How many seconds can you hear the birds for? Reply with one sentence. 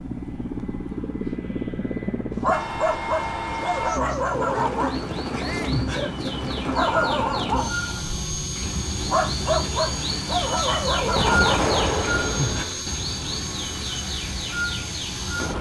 You can hear the birds for 11 seconds altogether.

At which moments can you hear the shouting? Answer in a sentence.
You can hear the shouting from 5.4 to 5.8 s.